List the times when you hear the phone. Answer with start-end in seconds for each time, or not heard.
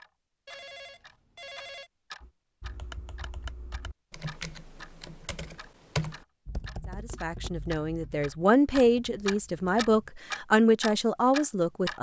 0.5-1.9.